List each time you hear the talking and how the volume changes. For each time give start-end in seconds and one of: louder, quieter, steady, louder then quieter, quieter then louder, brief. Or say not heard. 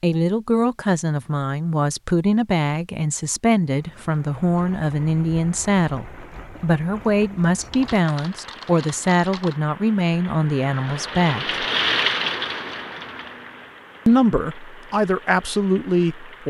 0.0-11.6 steady
14.1-16.4 brief.